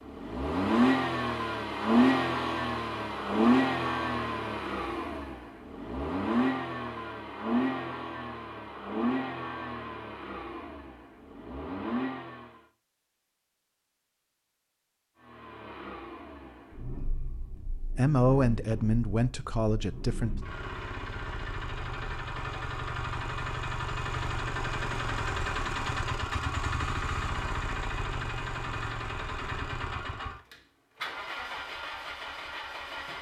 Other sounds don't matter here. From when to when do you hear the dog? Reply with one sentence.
The dog can't be heard in this clip.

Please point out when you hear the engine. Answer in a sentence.
You can hear the engine from 0.0 to 12.6 s and from 15.2 to 33.1 s.